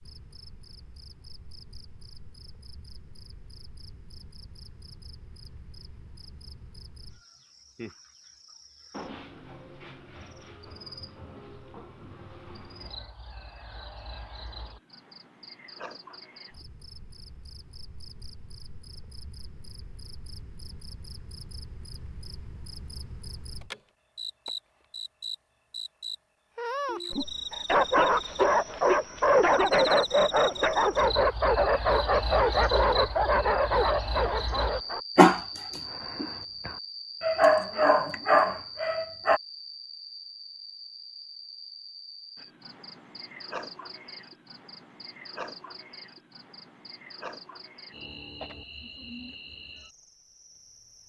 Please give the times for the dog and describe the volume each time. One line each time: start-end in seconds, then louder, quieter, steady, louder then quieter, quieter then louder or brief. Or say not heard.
27.5-39.4 steady.